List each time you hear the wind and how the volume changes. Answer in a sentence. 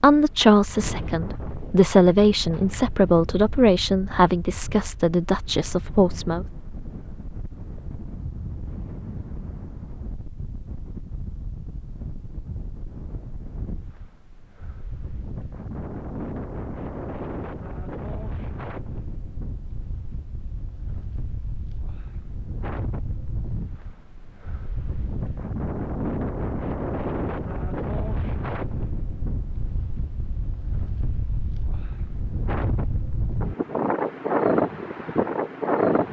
You can hear the wind from 0.0 to 36.0 s, getting louder.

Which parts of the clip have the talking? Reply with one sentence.
The talking can be heard from 0.0 to 6.5 s.